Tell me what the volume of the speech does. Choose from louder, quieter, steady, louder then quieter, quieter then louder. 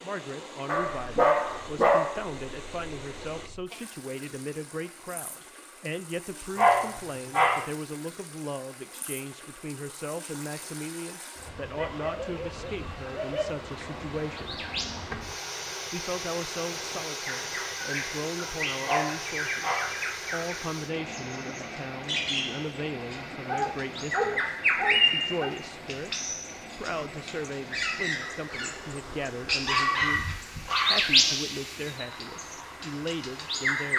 steady.